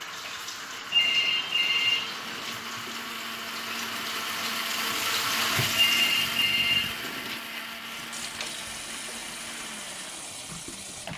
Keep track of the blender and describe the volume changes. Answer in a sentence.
The loudness of the blender goes up, then down.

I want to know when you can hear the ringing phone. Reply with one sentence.
The ringing phone can be heard from 0.9 to 2.5 s and from 5.8 to 7.4 s.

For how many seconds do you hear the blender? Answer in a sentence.
You can hear the blender for 11 seconds altogether.